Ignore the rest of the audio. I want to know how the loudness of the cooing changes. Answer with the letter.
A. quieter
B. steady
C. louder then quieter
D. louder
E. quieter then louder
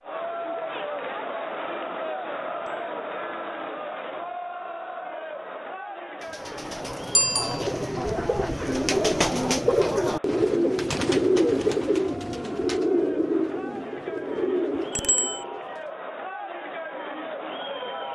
C.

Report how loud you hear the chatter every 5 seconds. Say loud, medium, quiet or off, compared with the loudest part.
loud, medium, medium, loud.